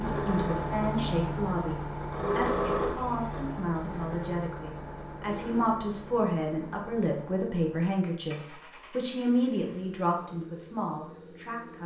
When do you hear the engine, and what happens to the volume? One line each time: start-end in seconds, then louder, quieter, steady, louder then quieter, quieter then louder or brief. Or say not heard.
0.0-11.8 quieter.